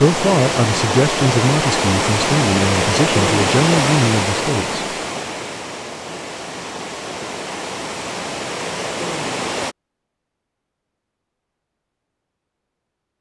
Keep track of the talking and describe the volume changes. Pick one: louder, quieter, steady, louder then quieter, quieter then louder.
steady.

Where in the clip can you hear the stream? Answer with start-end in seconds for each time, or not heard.
0.0-9.8.